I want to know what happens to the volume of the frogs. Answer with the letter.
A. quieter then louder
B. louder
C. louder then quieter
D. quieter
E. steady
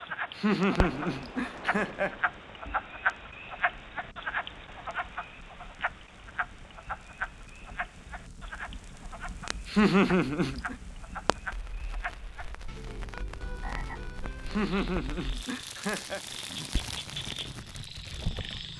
D.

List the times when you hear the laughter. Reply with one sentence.
The laughter can be heard from 0.3 to 2.1 s, from 9.4 to 10.8 s and from 14.4 to 16.2 s.